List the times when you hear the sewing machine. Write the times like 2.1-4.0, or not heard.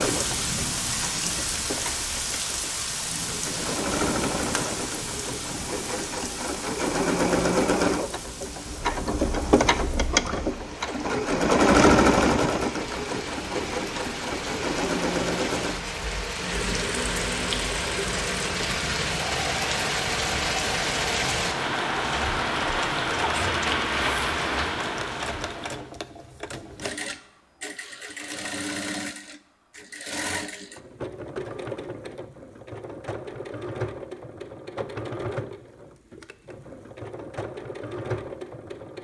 0.0-38.9.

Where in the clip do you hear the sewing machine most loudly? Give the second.
12 s.